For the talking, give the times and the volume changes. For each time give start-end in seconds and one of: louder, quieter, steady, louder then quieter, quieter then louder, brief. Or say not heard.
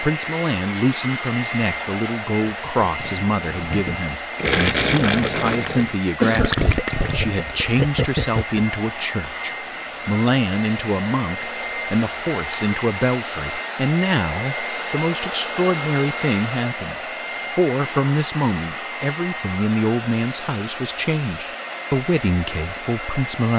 0.0-23.5 steady.